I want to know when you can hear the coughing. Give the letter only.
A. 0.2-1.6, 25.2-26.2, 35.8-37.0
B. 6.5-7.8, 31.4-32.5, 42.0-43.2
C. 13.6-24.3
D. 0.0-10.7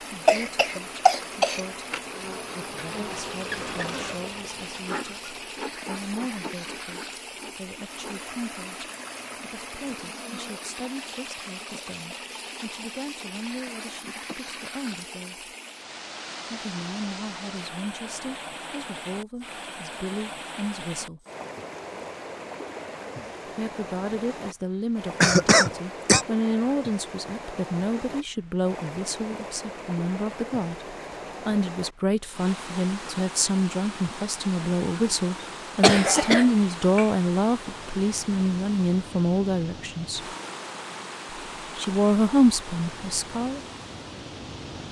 A.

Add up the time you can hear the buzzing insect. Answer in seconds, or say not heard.
11 s.